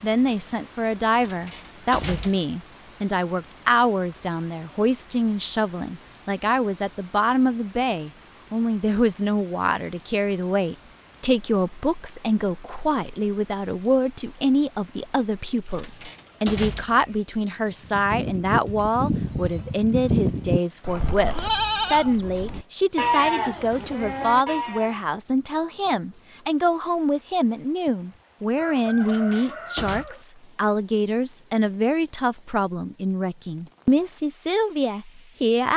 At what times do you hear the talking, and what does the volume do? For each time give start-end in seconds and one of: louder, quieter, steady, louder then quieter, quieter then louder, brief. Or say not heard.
0.0-35.7 steady.